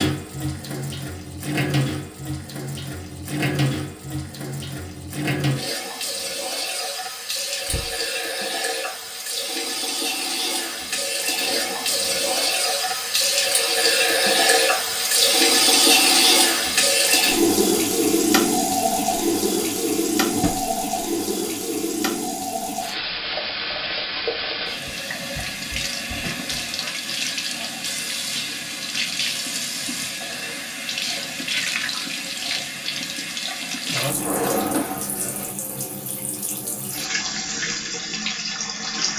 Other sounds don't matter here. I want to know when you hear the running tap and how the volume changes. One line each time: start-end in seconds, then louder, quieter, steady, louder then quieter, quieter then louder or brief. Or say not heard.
0.0-39.1 louder then quieter.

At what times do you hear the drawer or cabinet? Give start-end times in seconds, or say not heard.
7.7-8.1, 20.3-20.8, 34.0-35.5.